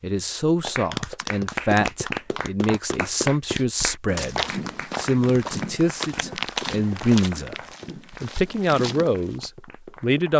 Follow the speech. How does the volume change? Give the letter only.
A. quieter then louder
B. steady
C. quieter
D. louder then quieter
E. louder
B.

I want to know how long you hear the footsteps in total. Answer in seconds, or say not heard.
5 s.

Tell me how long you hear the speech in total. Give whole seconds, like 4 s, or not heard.
10 s.